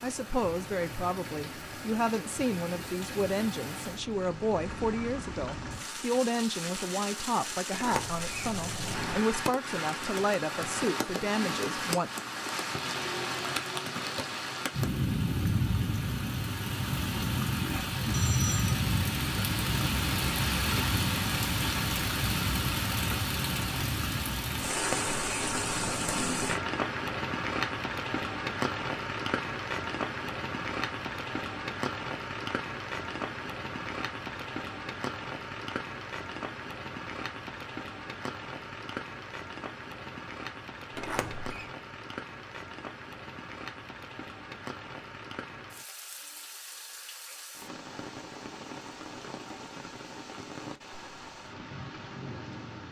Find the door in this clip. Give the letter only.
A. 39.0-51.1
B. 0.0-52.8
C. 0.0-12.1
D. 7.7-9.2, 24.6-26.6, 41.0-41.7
D.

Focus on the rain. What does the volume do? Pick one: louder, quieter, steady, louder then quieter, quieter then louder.
louder then quieter.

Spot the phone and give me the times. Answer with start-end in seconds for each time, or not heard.
18.1-18.8.